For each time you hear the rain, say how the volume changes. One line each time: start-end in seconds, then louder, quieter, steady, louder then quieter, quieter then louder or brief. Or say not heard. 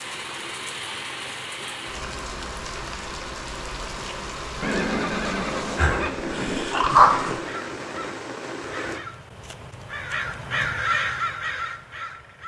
0.0-9.0 steady.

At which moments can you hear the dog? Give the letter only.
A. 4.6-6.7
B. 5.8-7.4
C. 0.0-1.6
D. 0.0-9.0
B.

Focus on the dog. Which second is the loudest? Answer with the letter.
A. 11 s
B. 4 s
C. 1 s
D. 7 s
D.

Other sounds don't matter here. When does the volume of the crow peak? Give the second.
11 s.